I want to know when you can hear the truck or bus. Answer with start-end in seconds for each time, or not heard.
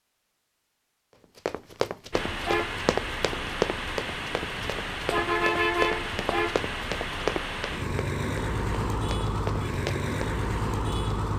2.1-11.3.